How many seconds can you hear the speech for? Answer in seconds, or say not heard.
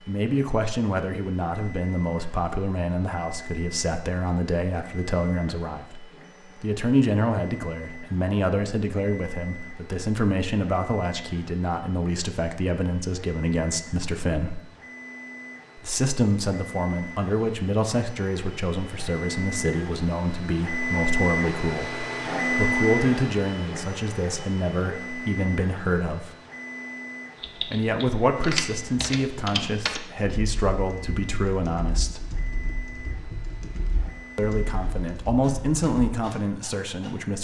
33 s.